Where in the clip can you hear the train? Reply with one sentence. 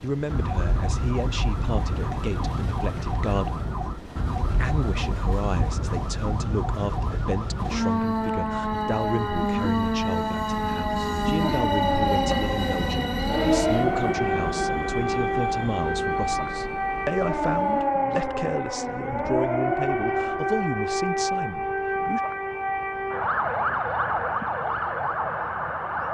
The train can be heard from 0.0 to 17.9 s.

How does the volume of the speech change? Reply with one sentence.
The loudness of the speech stays about the same.